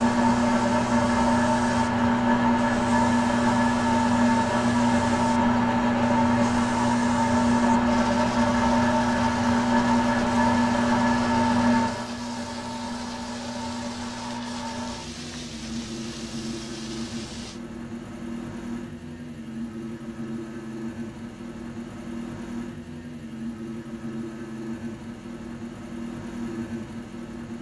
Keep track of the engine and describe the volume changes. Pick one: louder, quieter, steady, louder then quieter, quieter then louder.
quieter.